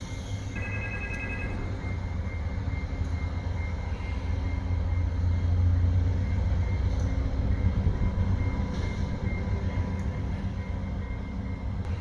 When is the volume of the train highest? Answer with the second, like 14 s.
8 s.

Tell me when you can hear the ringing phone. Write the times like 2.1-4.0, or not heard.
0.6-1.9.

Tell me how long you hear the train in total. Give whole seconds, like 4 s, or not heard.
12 s.